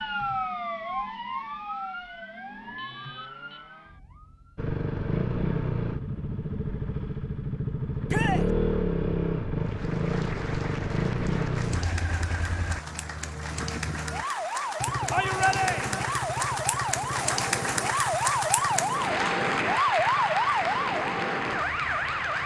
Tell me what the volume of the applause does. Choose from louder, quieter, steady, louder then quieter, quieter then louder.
louder.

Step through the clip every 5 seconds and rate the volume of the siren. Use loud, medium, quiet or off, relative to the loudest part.
medium, off, medium, loud, loud.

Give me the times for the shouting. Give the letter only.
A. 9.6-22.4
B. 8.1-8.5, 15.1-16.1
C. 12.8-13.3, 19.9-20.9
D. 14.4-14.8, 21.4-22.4
B.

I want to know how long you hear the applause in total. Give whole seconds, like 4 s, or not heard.
13 s.